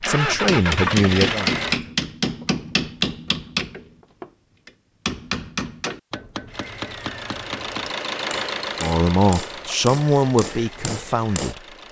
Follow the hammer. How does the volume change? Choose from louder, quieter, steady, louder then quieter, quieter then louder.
quieter.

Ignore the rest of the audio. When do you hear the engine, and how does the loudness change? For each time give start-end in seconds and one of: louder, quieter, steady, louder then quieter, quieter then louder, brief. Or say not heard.
0.0-1.8 brief
6.5-11.8 louder then quieter.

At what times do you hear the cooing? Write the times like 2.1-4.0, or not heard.
not heard.